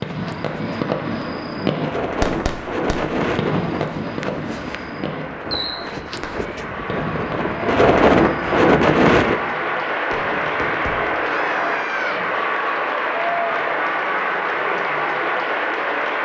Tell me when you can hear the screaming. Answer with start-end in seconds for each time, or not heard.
11.2-12.2.